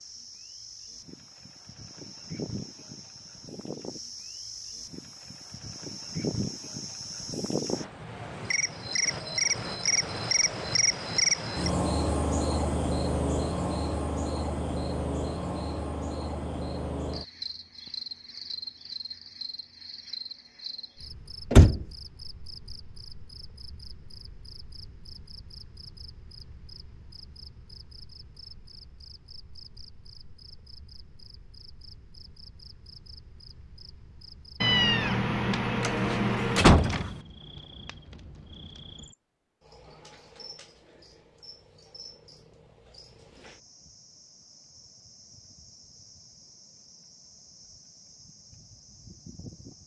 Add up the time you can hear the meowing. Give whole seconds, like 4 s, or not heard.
2 s.